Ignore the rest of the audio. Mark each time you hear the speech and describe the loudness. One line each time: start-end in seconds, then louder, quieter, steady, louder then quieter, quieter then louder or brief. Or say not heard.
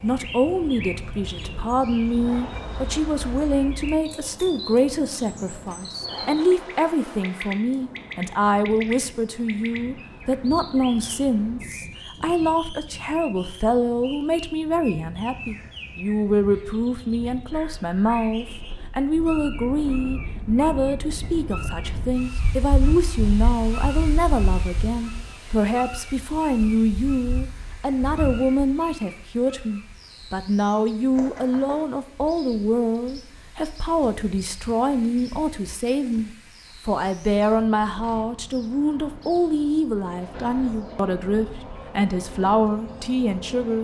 0.0-43.7 steady.